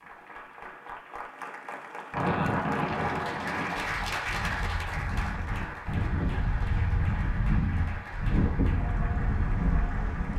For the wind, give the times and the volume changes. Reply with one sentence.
You can hear the wind from 2.1 to 10.3 s, getting quieter then louder.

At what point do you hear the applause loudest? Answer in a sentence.
The volume of the applause peaks at 4 seconds.